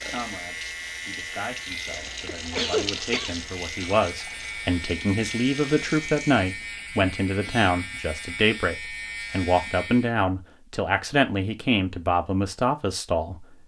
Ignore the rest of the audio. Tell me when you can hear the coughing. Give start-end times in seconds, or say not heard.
2.0-3.4.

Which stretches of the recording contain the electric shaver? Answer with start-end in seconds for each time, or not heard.
0.0-10.2.